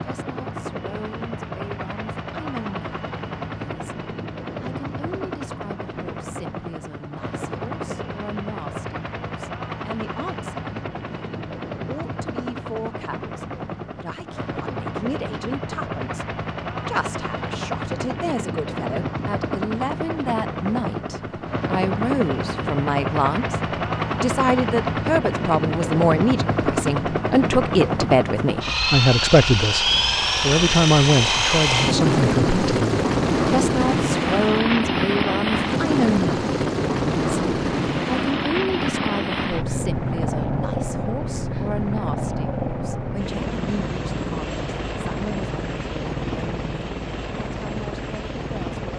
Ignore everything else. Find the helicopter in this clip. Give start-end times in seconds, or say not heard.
0.0-48.9.